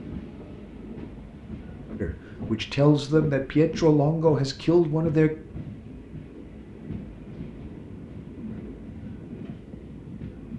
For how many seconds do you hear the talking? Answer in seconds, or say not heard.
3 s.